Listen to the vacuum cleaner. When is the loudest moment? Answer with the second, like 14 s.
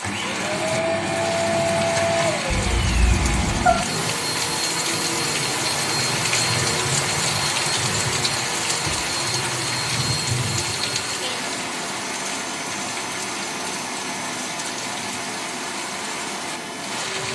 2 s.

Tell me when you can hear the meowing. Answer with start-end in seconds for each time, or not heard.
2.5-3.8.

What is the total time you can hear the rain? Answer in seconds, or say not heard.
17 s.